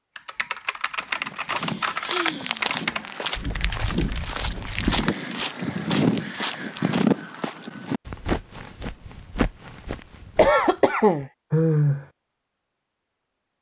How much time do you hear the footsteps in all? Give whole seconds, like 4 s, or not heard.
10 s.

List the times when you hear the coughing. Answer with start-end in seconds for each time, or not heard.
10.3-11.3.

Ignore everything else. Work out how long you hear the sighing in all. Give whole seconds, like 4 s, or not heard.
4 s.